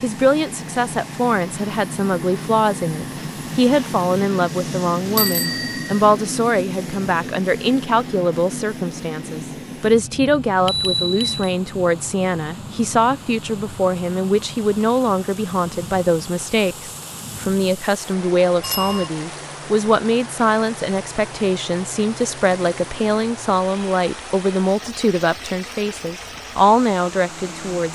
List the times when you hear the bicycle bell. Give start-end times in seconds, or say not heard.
5.2-6.0, 10.7-11.6, 18.6-19.1.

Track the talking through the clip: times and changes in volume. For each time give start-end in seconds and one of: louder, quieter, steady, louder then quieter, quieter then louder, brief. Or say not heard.
0.0-27.9 steady.